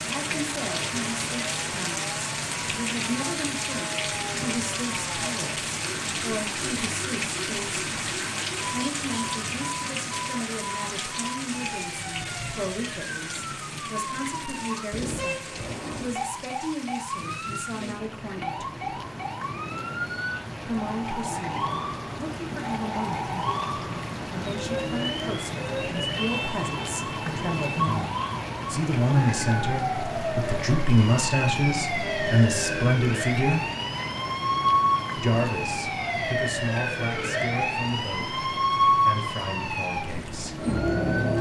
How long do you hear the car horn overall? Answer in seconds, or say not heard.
2 s.